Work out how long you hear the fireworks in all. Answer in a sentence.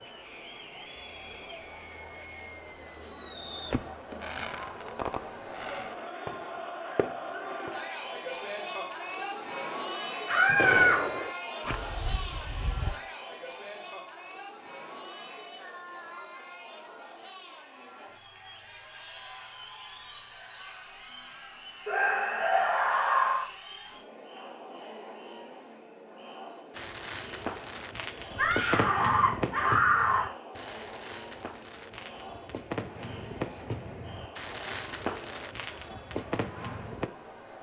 You can hear the fireworks for 21 seconds altogether.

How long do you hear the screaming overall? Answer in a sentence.
You can hear the screaming for 4 seconds altogether.